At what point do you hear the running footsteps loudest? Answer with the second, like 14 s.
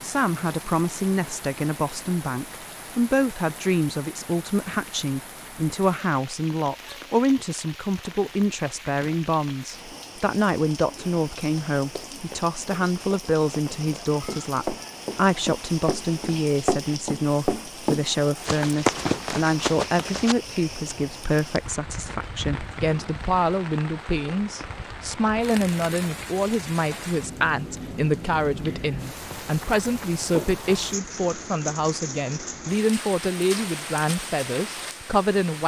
19 s.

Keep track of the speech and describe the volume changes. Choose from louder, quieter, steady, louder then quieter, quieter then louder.
steady.